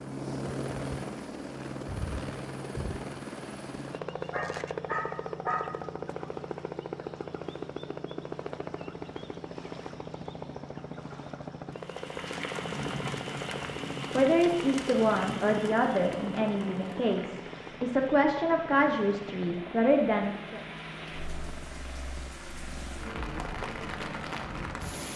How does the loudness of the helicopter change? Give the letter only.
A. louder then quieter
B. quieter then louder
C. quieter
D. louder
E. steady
C.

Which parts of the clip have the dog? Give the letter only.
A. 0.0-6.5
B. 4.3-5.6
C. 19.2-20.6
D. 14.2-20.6
B.